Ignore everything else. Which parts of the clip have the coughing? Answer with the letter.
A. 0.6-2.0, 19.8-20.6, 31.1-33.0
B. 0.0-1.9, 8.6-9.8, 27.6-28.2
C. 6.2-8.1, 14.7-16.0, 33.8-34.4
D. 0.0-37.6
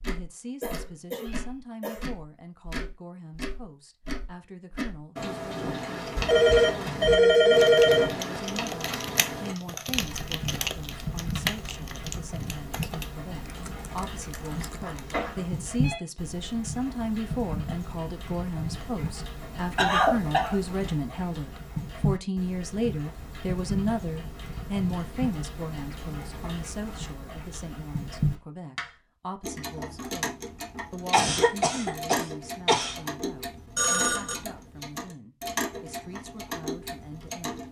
A.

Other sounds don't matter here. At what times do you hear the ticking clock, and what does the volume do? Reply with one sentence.
The ticking clock can be heard from 0.0 to 37.6 s, at a steady volume.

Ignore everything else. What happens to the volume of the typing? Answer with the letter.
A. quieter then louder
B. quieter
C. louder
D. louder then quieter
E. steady
B.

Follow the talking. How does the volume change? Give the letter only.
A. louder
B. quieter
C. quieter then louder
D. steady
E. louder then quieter
E.